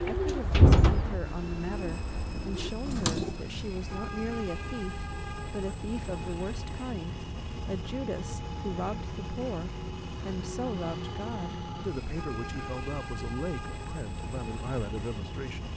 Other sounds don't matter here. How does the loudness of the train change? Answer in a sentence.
The volume of the train stays about the same.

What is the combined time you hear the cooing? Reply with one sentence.
You can hear the cooing for 3 seconds altogether.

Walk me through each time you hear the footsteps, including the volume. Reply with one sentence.
You can't hear the footsteps here.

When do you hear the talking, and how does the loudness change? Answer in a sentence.
You can hear the talking from 0.1 to 15.7 s, at a steady volume.